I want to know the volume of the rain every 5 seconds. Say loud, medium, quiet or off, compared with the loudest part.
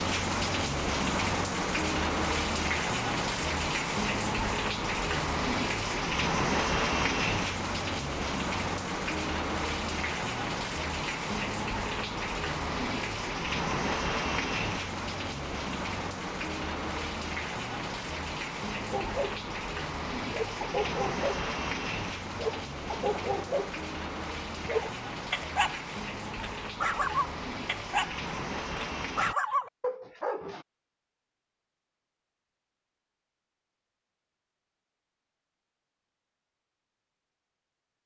loud, loud, loud, medium, medium, medium, off, off.